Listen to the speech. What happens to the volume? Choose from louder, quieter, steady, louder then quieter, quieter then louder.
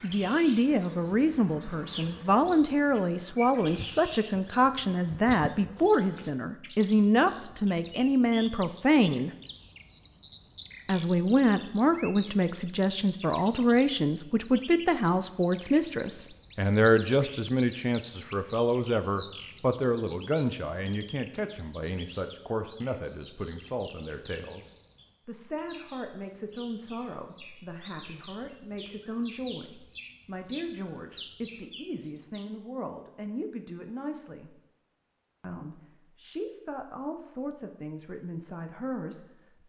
quieter.